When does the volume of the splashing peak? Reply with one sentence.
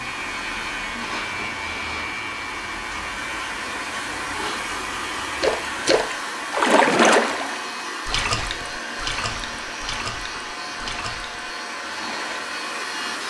The loudest moment of the splashing is at 7 seconds.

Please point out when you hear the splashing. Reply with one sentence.
You can hear the splashing from 5.4 to 12.4 s.